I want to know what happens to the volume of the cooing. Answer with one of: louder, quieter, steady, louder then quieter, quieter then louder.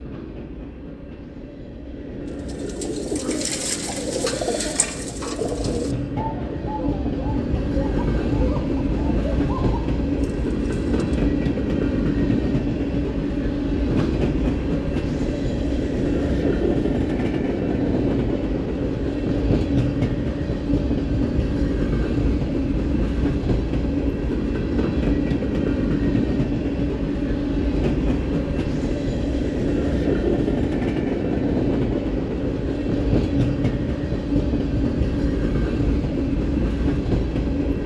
quieter.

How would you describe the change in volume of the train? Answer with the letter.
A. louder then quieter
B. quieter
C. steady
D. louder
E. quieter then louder
D.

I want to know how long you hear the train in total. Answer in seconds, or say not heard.
38 s.